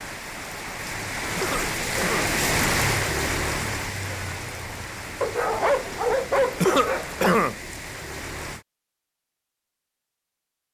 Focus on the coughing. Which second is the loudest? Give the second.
7 s.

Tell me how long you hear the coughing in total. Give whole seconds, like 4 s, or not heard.
2 s.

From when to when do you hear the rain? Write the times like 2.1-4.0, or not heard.
0.0-8.7.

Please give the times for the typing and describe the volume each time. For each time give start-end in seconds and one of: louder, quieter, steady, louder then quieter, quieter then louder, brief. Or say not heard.
not heard.